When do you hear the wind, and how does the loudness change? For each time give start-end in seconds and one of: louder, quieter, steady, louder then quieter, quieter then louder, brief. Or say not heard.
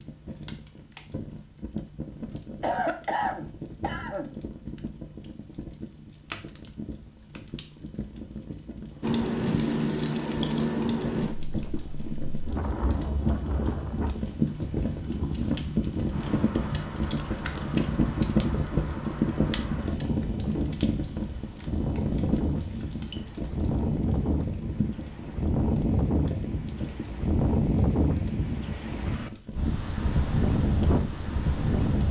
9.0-32.0 quieter then louder.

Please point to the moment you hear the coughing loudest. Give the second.
3 s.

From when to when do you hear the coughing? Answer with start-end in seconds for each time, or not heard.
2.6-4.3.